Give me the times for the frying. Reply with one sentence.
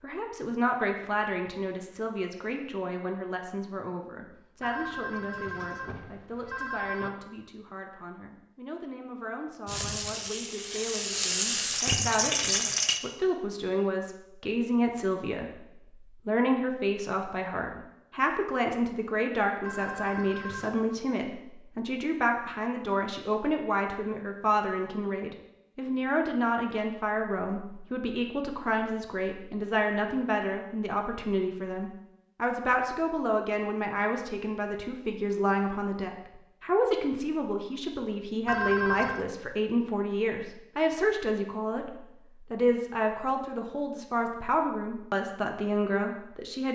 You can hear the frying from 9.7 to 13.0 s.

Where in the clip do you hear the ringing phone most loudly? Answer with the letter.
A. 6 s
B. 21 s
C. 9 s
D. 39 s
D.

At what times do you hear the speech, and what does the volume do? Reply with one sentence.
The speech can be heard from 0.0 to 15.7 s, getting quieter then louder; and from 16.2 to 46.6 s, at a steady volume.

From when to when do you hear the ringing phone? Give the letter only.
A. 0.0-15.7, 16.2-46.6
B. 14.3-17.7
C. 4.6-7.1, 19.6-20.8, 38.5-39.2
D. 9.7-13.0
C.